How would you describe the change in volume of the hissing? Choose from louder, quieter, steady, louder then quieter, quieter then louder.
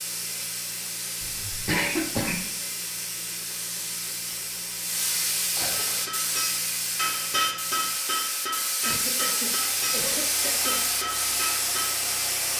louder.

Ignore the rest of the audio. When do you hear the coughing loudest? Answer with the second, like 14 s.
2 s.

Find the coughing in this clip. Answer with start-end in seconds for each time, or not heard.
1.2-2.5, 5.3-6.0, 8.8-10.8.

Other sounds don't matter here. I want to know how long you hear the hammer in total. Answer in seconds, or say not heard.
6 s.